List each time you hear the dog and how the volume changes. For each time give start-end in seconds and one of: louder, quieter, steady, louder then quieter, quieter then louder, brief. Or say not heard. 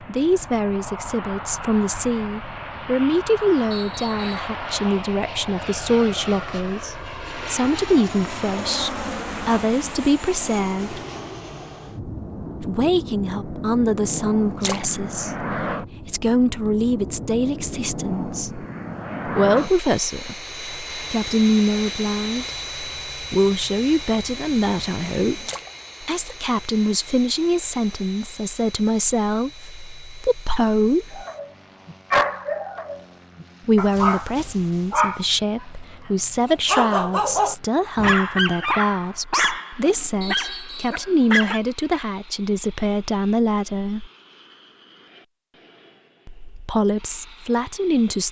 31.1-35.6 quieter then louder
36.5-41.6 quieter.